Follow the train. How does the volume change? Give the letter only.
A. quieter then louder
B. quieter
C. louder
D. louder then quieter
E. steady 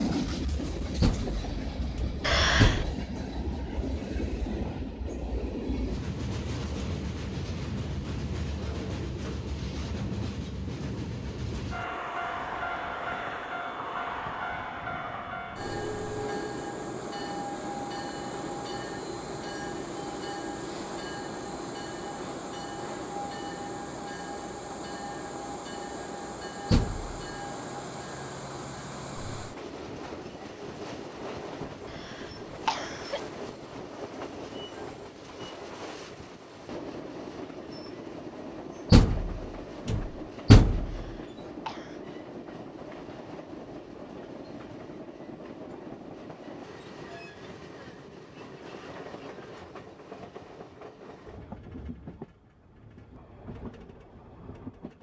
B.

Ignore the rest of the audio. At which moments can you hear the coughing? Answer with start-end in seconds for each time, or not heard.
2.2-2.9, 31.9-33.2, 40.9-42.0.